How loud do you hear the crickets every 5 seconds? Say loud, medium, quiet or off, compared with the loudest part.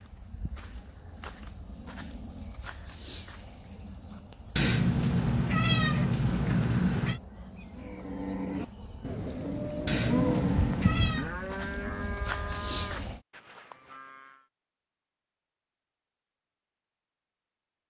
medium, medium, loud, off.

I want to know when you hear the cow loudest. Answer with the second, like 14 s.
10 s.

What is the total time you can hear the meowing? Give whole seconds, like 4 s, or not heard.
4 s.